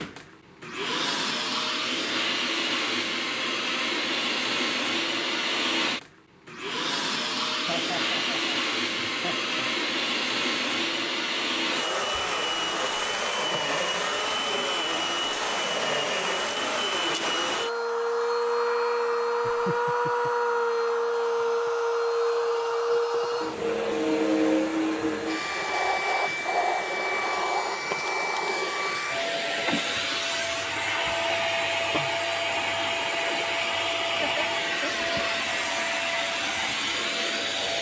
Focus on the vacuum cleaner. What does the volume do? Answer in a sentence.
The loudness of the vacuum cleaner stays about the same.